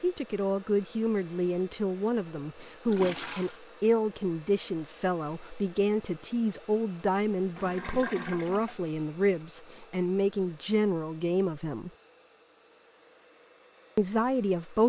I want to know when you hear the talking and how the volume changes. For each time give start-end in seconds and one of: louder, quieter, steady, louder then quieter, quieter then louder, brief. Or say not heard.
0.0-11.9 steady
13.9-14.8 brief.